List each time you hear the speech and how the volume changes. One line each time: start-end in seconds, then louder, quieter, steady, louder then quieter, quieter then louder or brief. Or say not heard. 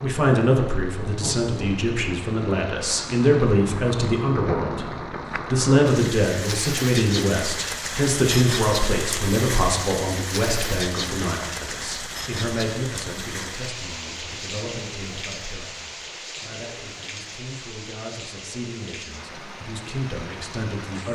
0.0-21.0 quieter.